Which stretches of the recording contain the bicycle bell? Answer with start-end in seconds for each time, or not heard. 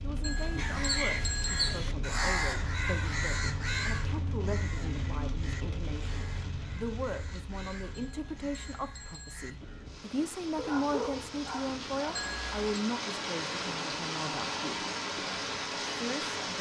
0.2-1.8, 7.9-9.5, 12.2-12.8.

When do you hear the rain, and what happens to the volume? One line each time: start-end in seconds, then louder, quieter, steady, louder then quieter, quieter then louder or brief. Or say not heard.
0.0-16.5 quieter then louder.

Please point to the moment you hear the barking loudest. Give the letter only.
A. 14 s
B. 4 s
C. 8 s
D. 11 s
D.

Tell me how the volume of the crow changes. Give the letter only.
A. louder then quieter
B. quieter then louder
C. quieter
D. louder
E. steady
C.